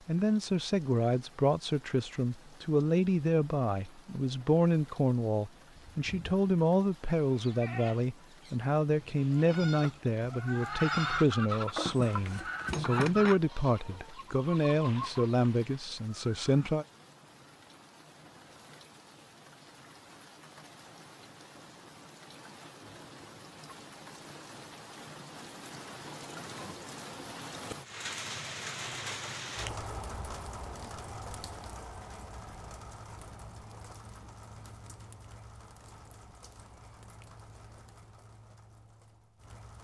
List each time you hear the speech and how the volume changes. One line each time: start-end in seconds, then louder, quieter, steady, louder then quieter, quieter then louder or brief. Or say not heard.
0.1-16.9 steady.